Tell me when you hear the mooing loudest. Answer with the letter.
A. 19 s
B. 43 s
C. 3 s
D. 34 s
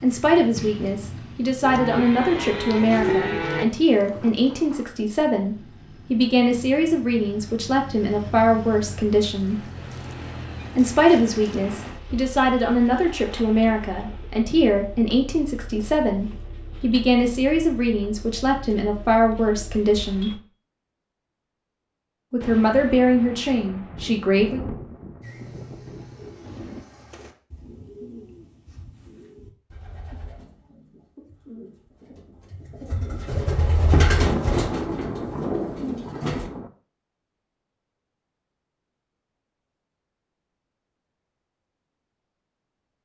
C.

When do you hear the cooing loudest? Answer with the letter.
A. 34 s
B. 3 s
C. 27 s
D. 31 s
A.